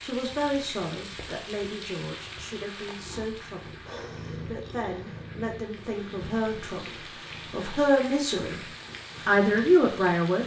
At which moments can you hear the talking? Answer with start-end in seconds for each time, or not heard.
0.0-8.6, 9.2-10.4.